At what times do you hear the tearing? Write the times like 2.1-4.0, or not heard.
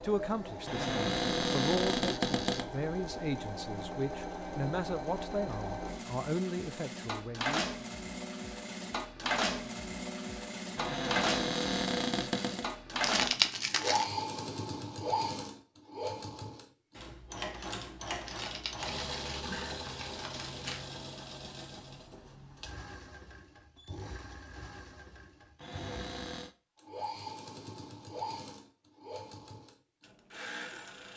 13.0-14.1, 18.2-20.9.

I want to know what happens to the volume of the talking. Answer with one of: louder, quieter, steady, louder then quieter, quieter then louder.
steady.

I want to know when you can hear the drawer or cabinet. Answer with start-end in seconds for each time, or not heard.
0.7-2.6, 10.8-12.7, 25.6-26.6.